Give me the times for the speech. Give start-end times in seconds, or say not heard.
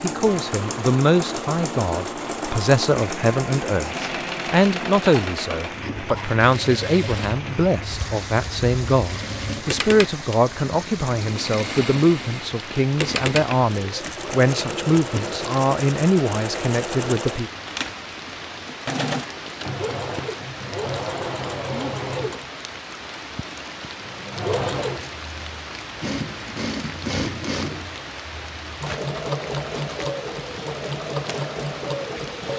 0.0-17.5.